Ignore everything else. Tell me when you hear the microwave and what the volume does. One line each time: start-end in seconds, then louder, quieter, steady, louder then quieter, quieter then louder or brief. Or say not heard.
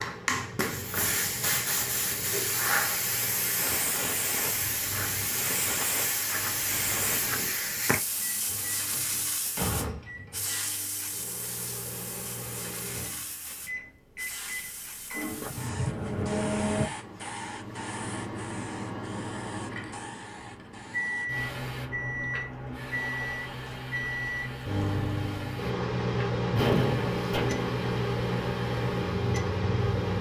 0.0-30.1 louder.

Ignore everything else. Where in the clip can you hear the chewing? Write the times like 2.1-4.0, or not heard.
not heard.